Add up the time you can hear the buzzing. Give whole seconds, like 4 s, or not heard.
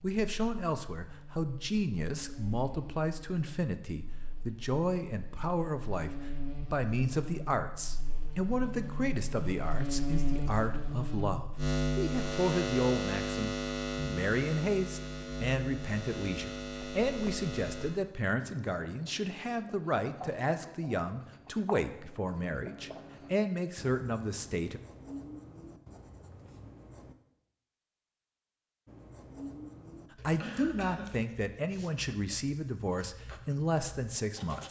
18 s.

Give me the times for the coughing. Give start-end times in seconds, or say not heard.
30.4-31.1.